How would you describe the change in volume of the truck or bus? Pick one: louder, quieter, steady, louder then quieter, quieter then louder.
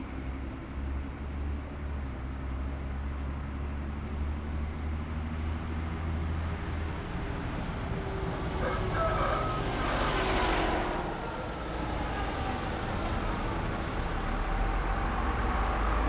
louder.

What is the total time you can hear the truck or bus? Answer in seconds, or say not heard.
16 s.